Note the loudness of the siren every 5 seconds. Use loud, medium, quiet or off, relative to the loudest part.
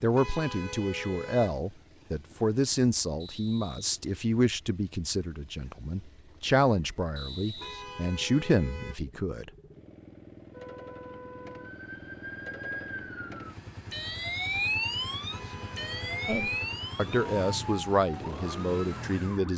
off, off, loud, loud.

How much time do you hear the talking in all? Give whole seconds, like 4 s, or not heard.
13 s.